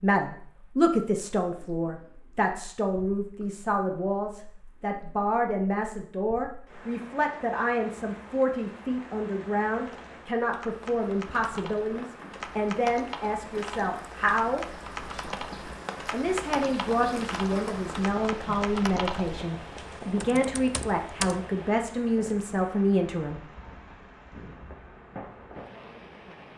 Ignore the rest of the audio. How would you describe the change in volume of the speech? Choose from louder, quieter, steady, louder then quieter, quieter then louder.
steady.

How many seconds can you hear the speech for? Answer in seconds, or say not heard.
22 s.